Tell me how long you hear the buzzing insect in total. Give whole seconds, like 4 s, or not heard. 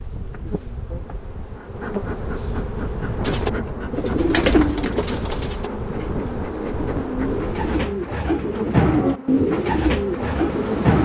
11 s.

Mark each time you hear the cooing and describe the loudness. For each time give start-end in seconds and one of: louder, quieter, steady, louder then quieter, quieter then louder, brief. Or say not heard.
3.2-11.0 quieter then louder.